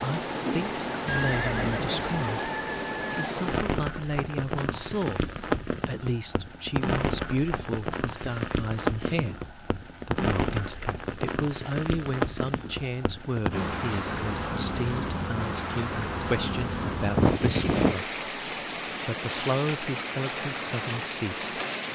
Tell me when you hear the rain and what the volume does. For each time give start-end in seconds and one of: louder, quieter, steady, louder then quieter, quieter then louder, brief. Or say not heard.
0.0-21.8 steady.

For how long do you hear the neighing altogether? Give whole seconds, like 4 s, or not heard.
2 s.